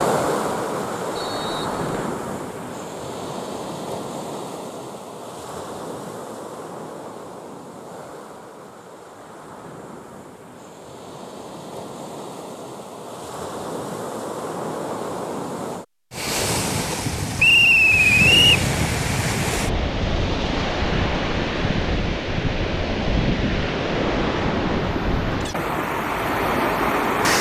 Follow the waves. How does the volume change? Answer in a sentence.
The loudness of the waves goes down, then up.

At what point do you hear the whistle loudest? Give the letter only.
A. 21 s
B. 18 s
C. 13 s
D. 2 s
B.